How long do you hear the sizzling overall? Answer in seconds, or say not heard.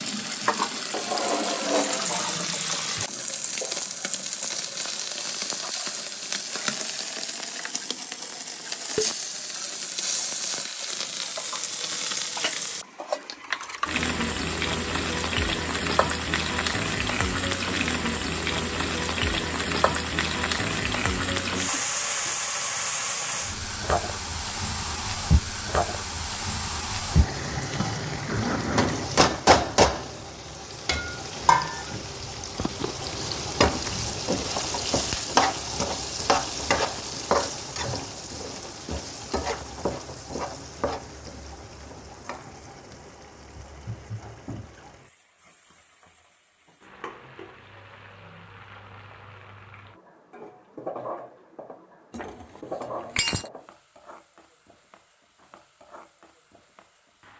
57 s.